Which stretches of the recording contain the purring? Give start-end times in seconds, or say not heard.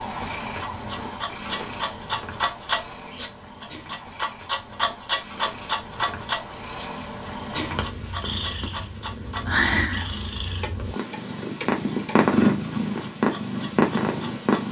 0.0-14.6.